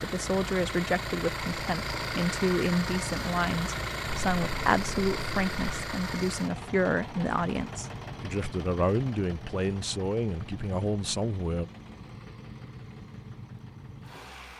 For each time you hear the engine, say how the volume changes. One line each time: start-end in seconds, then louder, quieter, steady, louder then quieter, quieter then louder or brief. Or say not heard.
0.0-14.5 quieter.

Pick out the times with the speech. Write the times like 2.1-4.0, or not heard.
0.0-11.7.